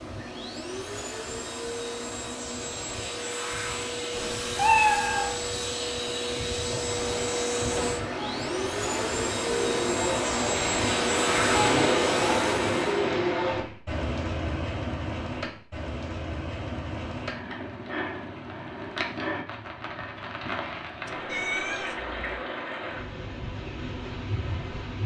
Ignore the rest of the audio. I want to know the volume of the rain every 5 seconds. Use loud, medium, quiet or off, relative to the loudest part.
off, medium, loud, medium, medium.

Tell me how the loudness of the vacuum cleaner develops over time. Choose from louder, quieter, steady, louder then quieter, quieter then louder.
louder.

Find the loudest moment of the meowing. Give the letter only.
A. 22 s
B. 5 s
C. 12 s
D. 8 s
B.